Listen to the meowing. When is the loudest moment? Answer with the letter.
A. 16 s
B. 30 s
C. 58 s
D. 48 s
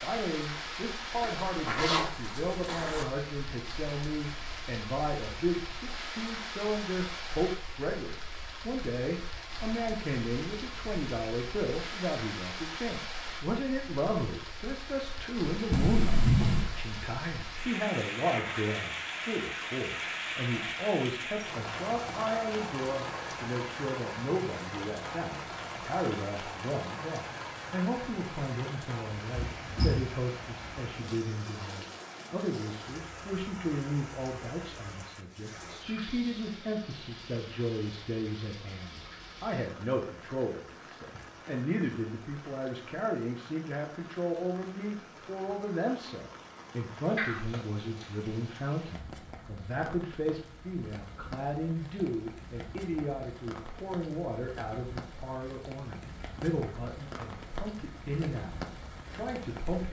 A.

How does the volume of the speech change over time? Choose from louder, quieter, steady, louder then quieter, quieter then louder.
steady.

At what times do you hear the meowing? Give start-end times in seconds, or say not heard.
15.7-16.6, 29.3-30.1, 47.1-48.0.